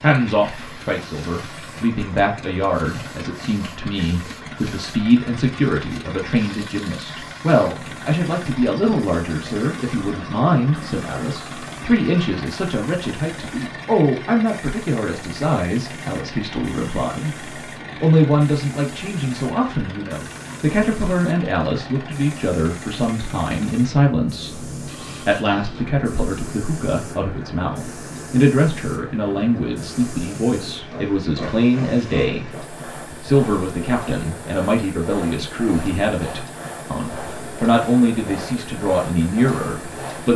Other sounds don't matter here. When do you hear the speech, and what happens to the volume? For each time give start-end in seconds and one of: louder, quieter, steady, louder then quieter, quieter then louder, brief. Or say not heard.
0.0-40.3 steady.